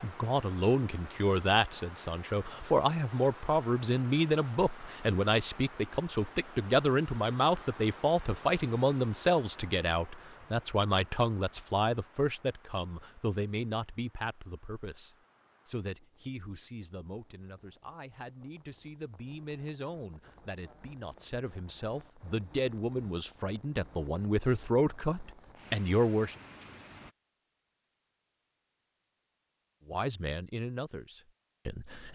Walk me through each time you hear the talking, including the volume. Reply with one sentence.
You can hear the talking from 0.0 to 26.4 s, getting quieter then louder; and briefly from 29.9 to 32.1 s.